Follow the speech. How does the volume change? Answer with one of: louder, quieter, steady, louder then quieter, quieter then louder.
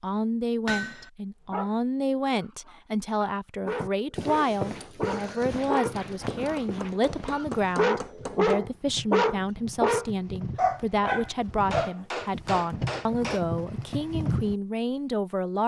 steady.